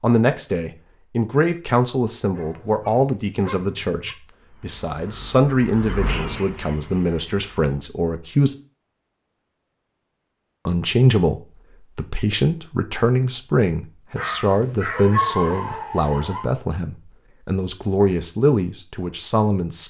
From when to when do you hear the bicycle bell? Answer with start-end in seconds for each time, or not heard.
not heard.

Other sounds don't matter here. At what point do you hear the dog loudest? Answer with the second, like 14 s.
15 s.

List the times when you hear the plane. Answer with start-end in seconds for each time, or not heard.
not heard.